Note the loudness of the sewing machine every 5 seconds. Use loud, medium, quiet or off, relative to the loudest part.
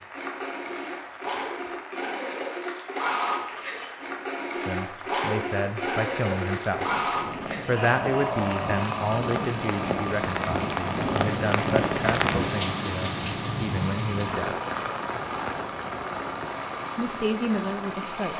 loud, loud, medium, medium.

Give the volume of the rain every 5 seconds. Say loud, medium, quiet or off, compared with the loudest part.
quiet, medium, loud, medium.